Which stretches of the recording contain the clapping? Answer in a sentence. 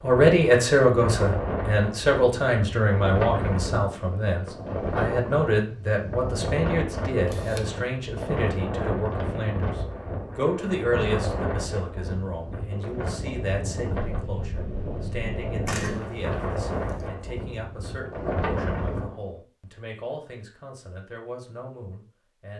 The clapping can't be heard in this clip.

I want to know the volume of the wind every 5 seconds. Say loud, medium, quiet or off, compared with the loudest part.
loud, loud, loud, loud, off.